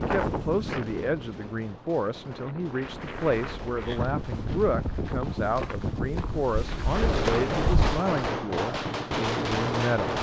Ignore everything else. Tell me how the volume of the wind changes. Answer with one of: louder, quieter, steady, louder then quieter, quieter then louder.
quieter then louder.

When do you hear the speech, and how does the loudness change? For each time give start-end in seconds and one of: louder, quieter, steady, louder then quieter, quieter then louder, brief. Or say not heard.
0.0-10.1 steady.